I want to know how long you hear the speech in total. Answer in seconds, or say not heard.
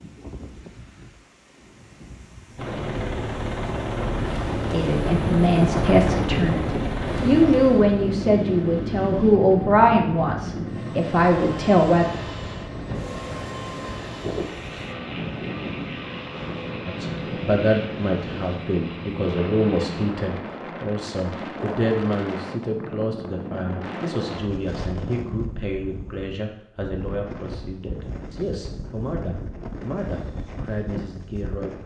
22 s.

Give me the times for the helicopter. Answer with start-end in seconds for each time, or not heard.
2.5-20.1.